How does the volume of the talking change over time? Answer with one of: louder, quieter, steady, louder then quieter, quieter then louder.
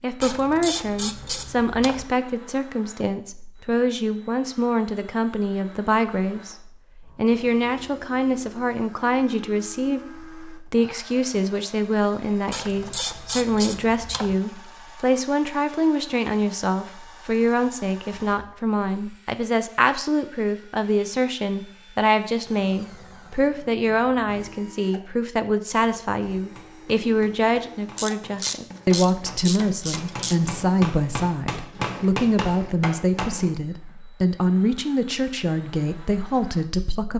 steady.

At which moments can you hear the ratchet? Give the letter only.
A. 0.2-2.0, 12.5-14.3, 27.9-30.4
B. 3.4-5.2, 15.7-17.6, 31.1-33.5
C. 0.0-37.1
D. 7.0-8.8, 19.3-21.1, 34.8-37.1
A.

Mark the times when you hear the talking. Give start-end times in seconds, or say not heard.
0.0-37.1.